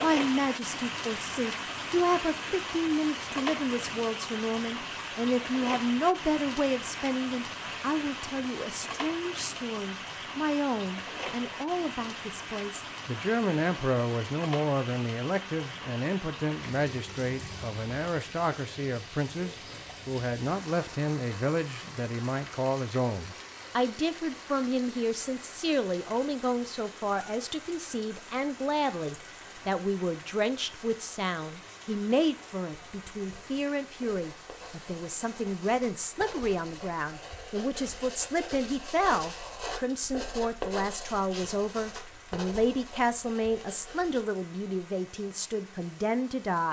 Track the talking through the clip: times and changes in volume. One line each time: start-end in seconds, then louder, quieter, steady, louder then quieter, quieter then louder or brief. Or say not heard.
0.0-46.6 steady.